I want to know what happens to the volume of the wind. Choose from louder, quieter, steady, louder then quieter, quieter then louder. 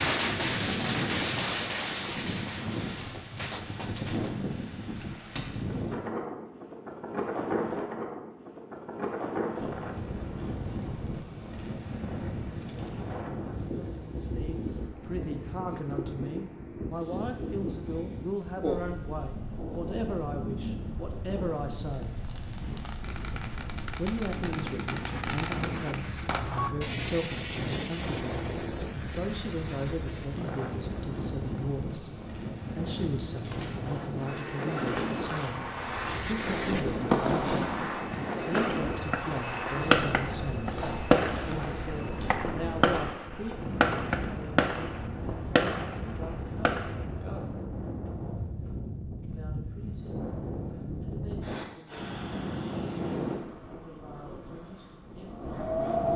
steady.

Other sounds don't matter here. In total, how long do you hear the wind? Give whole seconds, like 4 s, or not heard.
56 s.